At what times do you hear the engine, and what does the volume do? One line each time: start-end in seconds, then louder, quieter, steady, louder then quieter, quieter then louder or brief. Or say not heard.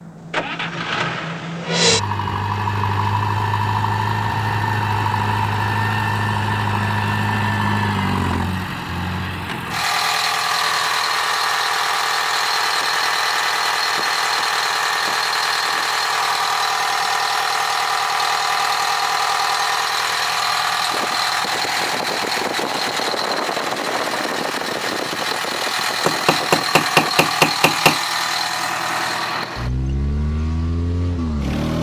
0.0-31.7 steady.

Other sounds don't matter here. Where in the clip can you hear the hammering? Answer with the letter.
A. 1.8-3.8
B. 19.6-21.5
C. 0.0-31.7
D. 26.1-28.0
D.